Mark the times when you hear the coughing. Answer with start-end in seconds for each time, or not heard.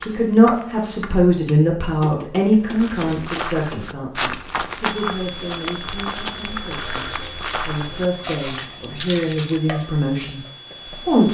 not heard.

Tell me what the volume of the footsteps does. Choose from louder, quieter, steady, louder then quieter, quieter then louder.
steady.